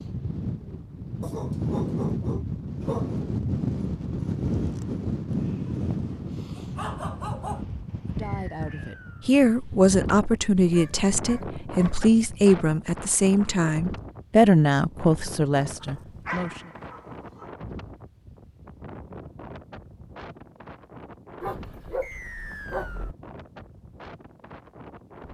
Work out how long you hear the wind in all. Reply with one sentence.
The wind can be heard for 25 seconds in total.